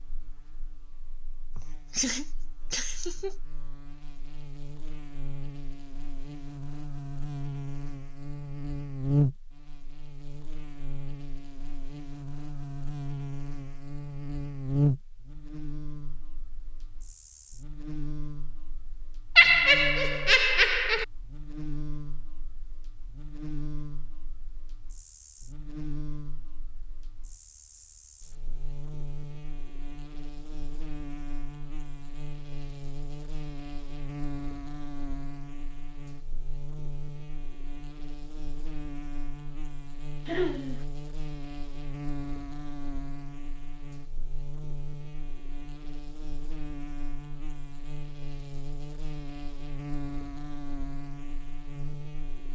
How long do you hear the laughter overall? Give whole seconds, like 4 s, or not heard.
4 s.